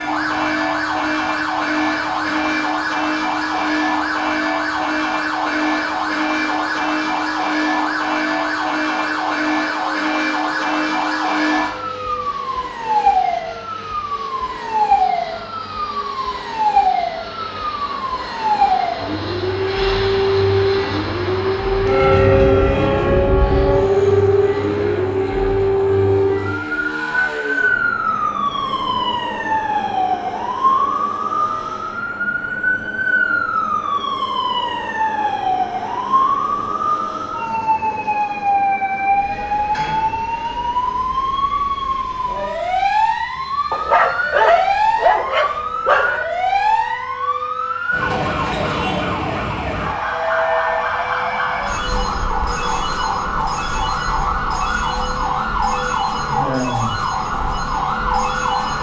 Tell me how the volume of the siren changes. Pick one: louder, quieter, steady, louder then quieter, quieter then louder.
steady.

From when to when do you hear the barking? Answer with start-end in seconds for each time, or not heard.
43.7-46.2.